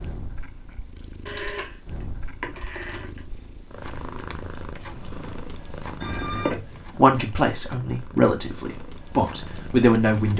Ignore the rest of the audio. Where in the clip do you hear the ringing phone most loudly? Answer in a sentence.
The volume of the ringing phone peaks at 6 seconds.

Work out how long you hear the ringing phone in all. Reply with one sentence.
The ringing phone can be heard for 3 seconds in total.